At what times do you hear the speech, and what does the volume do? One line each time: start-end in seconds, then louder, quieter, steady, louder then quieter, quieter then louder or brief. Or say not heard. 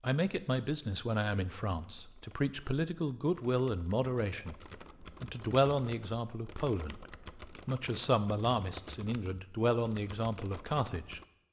0.0-11.2 steady.